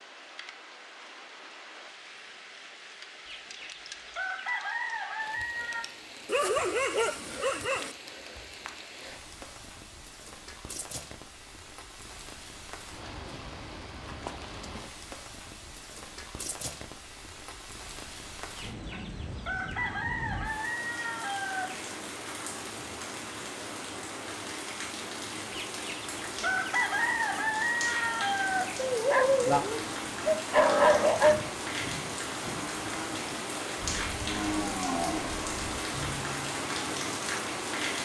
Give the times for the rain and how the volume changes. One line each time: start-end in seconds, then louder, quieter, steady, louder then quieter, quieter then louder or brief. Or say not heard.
0.0-38.0 louder.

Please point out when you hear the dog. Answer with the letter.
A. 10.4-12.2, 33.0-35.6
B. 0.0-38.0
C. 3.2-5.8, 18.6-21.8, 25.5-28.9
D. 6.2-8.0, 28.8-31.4
D.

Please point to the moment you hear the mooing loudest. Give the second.
31 s.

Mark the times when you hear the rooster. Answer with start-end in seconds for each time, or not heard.
3.2-5.8, 18.6-21.8, 25.5-28.9.